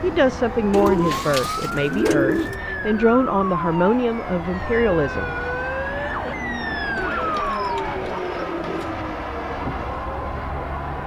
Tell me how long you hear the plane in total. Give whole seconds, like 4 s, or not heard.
11 s.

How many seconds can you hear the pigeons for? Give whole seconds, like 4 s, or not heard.
4 s.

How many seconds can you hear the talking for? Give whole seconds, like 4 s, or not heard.
5 s.